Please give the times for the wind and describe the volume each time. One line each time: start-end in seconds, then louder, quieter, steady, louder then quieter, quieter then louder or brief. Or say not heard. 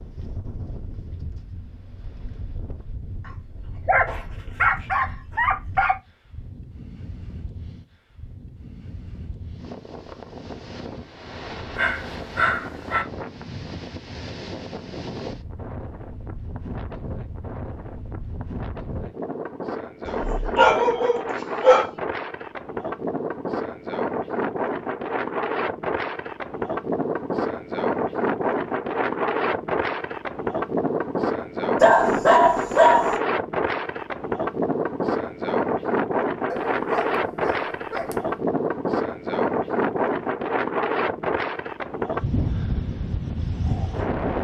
0.0-44.3 louder.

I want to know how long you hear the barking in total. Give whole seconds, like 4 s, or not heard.
8 s.